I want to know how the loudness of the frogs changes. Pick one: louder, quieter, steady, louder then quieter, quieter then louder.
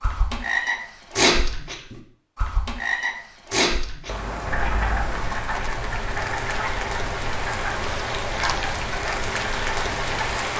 quieter.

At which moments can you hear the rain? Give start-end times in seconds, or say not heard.
4.0-10.5.